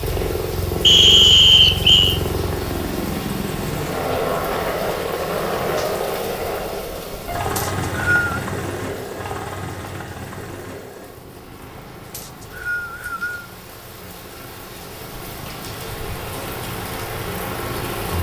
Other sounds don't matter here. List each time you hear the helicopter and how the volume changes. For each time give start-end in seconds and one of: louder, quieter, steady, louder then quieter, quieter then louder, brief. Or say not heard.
0.0-18.1 quieter then louder.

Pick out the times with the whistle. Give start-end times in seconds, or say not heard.
0.8-2.2, 7.5-8.3, 12.1-13.4.